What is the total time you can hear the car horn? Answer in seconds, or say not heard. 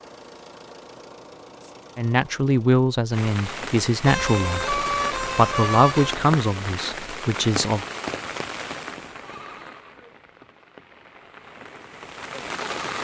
2 s.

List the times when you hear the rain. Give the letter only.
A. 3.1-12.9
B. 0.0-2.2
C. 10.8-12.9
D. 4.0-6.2
A.